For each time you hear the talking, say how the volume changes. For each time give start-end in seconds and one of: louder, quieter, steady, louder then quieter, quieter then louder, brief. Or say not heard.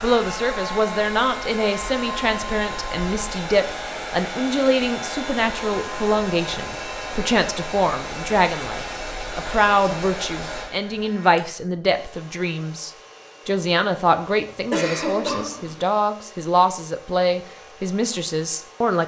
0.0-19.0 steady.